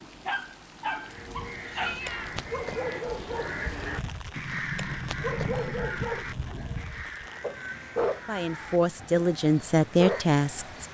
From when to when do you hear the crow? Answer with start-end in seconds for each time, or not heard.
1.0-10.8.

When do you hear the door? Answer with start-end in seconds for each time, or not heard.
4.3-6.8.